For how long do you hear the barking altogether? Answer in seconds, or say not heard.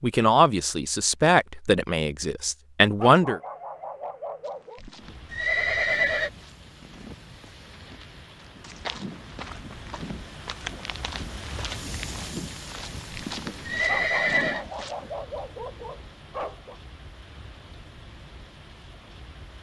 5 s.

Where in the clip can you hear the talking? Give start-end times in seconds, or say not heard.
0.0-3.4.